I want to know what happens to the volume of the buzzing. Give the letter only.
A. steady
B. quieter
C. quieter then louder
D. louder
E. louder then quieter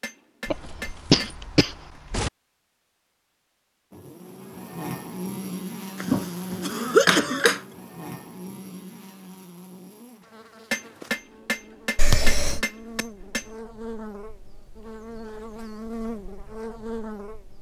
C.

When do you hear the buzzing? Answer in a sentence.
You can hear the buzzing from 3.9 to 17.5 s.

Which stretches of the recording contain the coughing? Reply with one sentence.
The coughing can be heard from 0.5 to 2.3 s, from 6.0 to 7.6 s and from 11.9 to 12.7 s.